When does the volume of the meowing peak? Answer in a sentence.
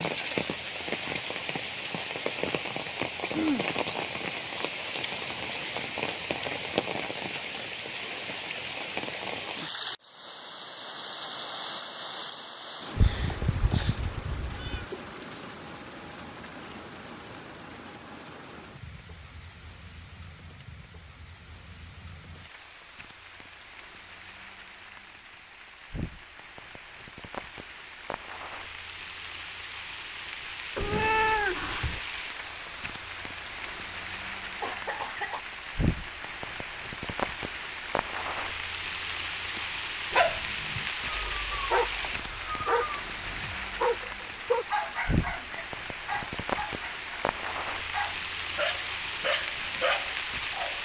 The loudest moment of the meowing is at 31 seconds.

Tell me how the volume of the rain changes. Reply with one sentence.
The volume of the rain goes down, then up.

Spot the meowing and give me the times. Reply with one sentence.
The meowing can be heard from 12.9 to 14.8 s, from 30.8 to 32.0 s and from 41.0 to 43.0 s.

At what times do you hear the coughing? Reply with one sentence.
You can hear the coughing from 3.3 to 3.7 s and from 34.6 to 35.4 s.